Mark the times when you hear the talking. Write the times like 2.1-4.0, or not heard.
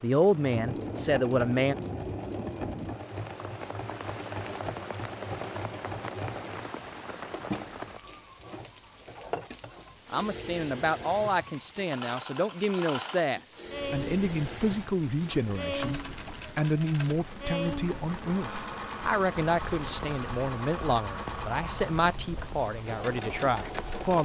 0.0-1.8, 10.1-24.2.